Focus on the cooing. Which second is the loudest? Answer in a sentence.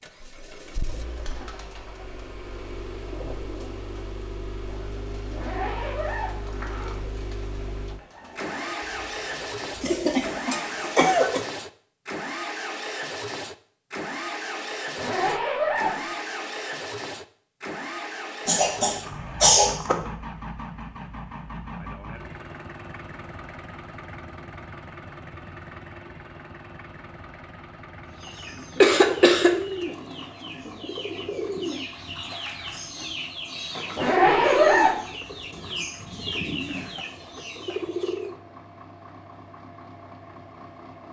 The loudest moment of the cooing is at 35 seconds.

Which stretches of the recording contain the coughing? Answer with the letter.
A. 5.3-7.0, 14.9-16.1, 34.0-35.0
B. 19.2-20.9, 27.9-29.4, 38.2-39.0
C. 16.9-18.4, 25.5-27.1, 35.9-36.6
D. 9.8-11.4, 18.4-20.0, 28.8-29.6
D.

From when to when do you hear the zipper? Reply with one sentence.
You can hear the zipper from 5.3 to 7.0 s, from 14.9 to 16.1 s and from 34.0 to 35.0 s.